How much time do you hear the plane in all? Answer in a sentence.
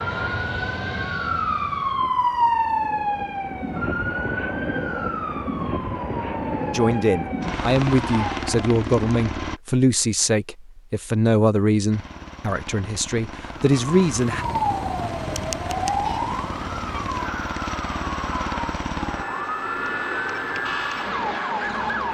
The plane can be heard for 20 seconds in total.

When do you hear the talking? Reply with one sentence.
The talking can be heard from 6.7 to 14.4 s.